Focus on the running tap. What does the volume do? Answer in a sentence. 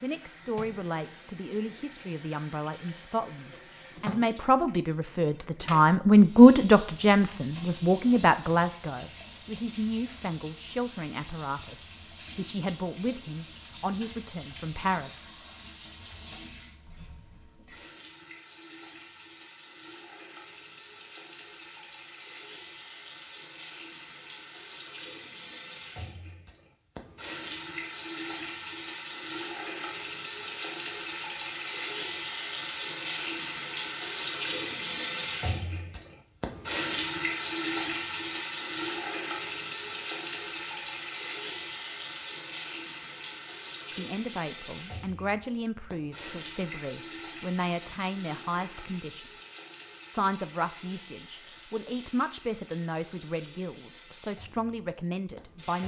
The loudness of the running tap goes up, then down.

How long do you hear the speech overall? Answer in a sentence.
The speech can be heard for 26 seconds in total.